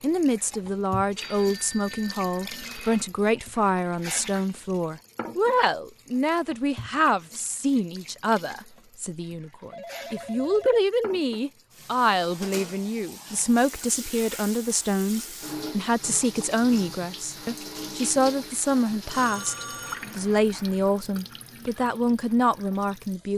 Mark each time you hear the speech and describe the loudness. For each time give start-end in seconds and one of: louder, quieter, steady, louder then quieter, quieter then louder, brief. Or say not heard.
0.0-23.3 steady.